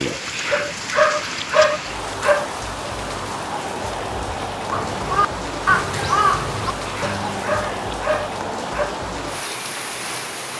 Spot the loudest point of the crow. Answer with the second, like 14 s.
6 s.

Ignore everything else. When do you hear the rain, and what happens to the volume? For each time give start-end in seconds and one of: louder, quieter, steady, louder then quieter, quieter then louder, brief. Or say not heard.
0.0-10.5 steady.